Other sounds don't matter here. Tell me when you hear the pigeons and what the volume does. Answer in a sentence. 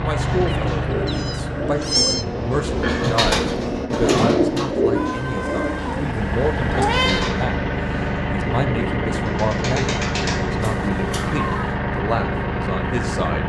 The pigeons can be heard from 0.1 to 10.7 s, getting louder then quieter.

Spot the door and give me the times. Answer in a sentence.
You can't hear the door here.